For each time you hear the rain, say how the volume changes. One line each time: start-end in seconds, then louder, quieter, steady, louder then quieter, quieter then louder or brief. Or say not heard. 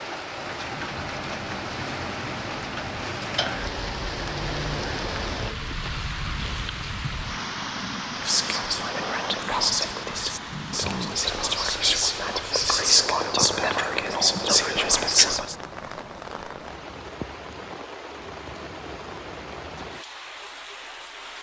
0.0-21.3 quieter.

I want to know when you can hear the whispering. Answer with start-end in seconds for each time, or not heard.
8.2-15.6.